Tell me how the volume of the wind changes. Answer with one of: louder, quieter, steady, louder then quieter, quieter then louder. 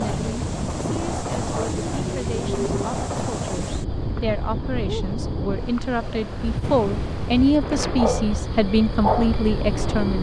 quieter.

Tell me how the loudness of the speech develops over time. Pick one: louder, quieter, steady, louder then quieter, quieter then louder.
louder.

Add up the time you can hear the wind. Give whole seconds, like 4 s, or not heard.
10 s.